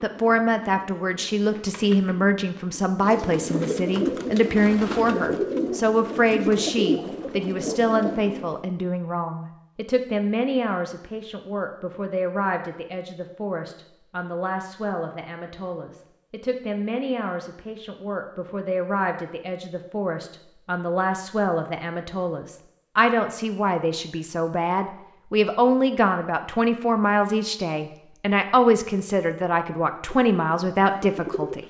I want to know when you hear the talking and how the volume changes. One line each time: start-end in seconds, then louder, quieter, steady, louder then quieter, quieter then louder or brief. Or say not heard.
0.0-31.6 quieter then louder.